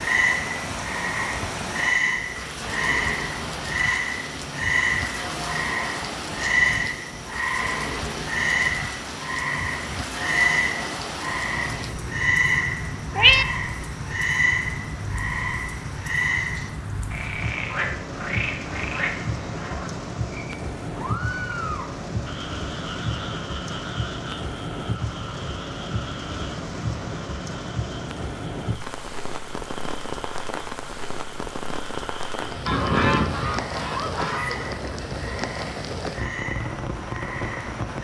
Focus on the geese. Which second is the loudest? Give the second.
33 s.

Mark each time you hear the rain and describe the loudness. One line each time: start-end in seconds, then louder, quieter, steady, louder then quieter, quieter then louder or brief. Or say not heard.
0.0-37.9 steady.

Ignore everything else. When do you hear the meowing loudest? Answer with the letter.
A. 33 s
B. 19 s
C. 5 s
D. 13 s
D.